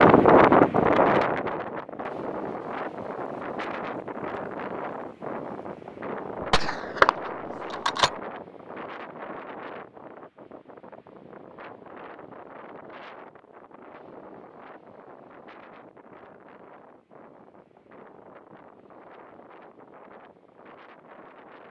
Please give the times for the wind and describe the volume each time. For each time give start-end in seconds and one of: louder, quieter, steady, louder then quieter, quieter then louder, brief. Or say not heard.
0.0-21.6 quieter.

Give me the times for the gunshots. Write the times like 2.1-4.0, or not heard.
6.4-8.1.